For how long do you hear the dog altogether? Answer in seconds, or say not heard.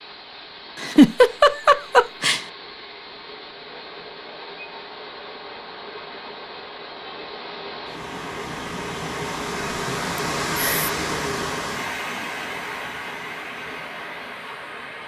not heard.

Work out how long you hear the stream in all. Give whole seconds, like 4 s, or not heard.
15 s.